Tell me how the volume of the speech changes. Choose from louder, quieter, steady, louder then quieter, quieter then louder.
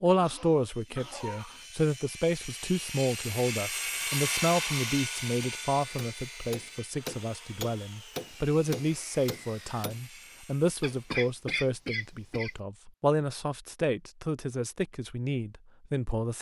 steady.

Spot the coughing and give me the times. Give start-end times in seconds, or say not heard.
0.1-1.6, 10.8-12.5.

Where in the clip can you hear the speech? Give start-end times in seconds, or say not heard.
0.0-16.3.